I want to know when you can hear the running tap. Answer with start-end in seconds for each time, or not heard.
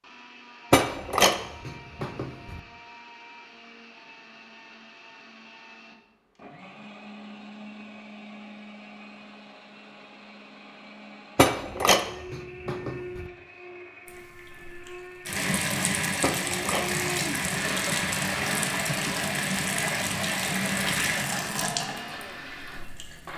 14.1-23.3.